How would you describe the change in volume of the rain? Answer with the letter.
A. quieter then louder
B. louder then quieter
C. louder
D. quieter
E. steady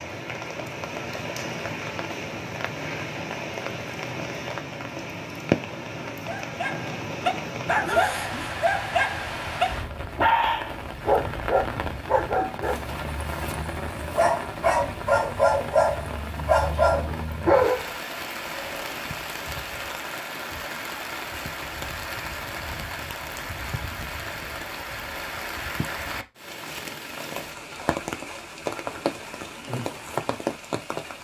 E.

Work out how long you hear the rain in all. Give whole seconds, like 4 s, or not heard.
31 s.